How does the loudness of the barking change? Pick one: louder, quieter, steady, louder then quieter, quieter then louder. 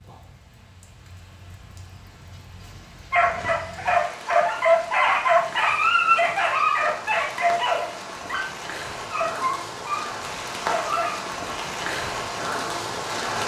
quieter.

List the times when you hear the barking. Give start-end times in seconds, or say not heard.
3.1-11.2.